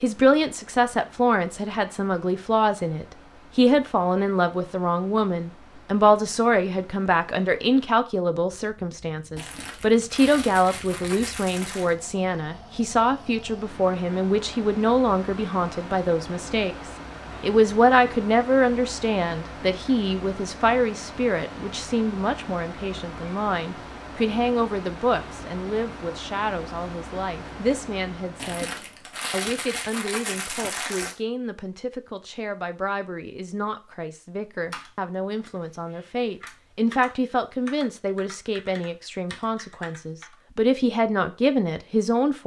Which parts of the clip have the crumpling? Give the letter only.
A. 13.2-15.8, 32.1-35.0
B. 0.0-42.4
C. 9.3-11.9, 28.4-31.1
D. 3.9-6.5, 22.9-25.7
C.